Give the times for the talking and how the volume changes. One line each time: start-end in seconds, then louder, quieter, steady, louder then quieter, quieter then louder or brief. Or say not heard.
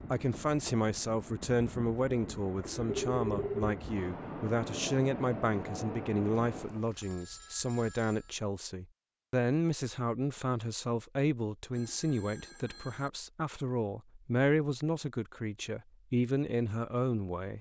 0.1-17.5 steady.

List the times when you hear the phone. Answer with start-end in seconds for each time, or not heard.
2.9-3.8, 6.5-8.3, 11.7-13.1.